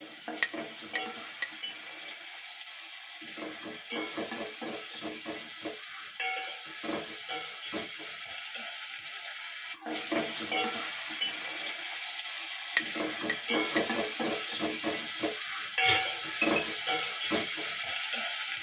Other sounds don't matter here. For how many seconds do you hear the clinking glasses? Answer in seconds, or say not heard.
2 s.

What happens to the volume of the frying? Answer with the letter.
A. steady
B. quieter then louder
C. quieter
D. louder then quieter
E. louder
E.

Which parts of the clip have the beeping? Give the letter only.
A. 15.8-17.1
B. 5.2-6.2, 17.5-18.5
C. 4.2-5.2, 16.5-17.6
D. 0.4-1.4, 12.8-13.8
A.